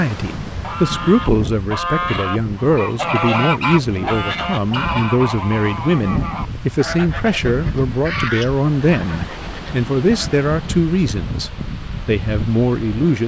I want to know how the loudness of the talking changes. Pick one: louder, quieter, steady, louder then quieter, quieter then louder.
steady.